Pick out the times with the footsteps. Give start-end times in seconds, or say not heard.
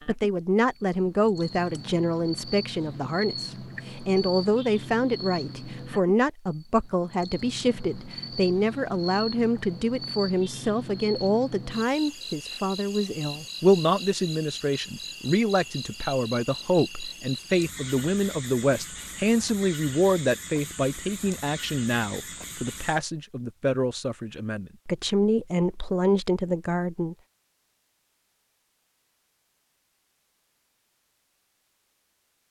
not heard.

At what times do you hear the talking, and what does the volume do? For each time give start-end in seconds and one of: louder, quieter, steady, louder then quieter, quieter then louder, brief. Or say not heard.
0.1-27.1 steady.